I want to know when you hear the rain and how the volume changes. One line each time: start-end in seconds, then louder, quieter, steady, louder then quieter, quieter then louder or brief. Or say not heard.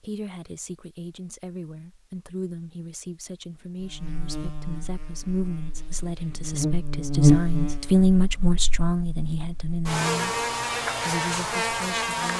not heard.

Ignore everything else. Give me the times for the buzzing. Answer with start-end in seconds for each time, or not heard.
3.8-12.3.